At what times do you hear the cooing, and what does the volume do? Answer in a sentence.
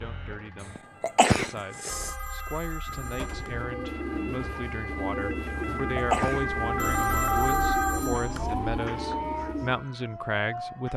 The cooing can be heard from 2.9 to 9.8 s, at a steady volume.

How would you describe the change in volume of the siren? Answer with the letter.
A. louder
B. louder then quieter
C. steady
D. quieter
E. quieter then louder
B.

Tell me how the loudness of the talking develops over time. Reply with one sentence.
The volume of the talking goes up.